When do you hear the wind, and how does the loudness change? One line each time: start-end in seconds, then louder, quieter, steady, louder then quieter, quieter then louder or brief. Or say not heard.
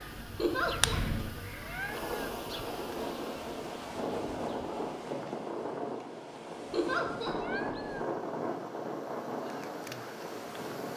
0.0-10.9 steady.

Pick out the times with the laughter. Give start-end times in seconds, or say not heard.
0.3-1.0, 6.7-7.3.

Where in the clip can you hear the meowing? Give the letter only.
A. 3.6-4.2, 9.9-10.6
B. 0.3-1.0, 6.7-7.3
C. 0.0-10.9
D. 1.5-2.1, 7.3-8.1
D.